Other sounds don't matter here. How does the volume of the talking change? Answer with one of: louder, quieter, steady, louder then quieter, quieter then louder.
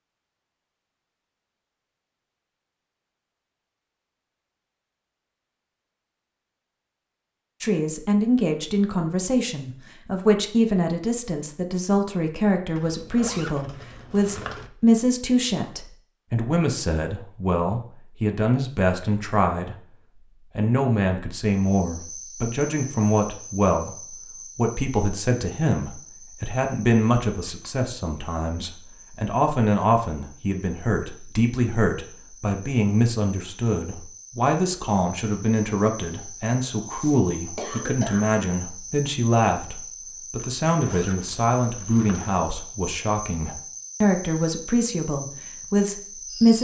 steady.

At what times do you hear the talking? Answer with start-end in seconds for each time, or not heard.
7.6-46.5.